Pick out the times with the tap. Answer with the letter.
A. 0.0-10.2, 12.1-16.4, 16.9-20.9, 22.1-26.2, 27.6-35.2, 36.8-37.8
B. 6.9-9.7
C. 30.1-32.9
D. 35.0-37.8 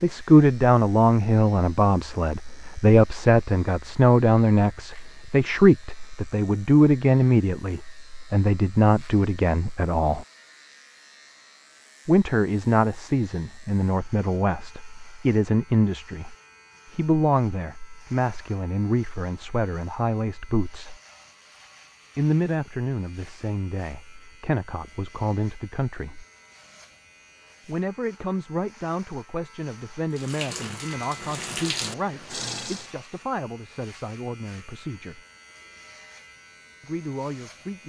C.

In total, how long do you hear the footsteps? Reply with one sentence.
The footsteps can't be heard in this clip.